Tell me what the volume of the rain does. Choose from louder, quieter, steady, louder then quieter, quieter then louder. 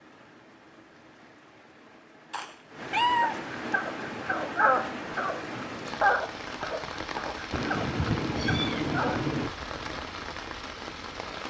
louder.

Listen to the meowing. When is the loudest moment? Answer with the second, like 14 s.
3 s.